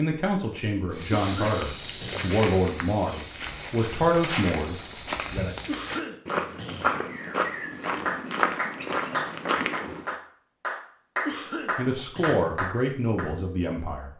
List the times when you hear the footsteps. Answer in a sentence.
You can hear the footsteps from 0.9 to 10.2 s.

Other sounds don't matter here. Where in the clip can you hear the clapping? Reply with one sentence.
The clapping can be heard from 8.1 to 13.2 s.